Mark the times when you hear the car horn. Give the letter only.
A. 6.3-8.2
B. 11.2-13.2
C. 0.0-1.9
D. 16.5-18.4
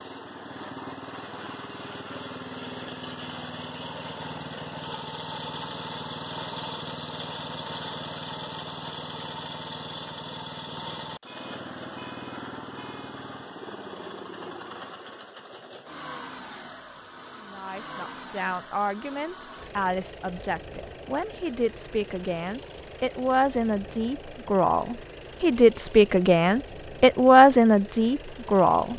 B.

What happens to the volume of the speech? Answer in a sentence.
The loudness of the speech goes up.